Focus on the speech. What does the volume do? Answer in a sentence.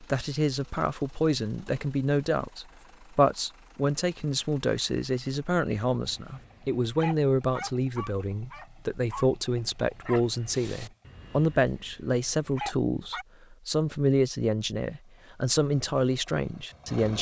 The volume of the speech stays about the same.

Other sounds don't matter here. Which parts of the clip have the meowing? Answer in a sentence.
You can't hear the meowing here.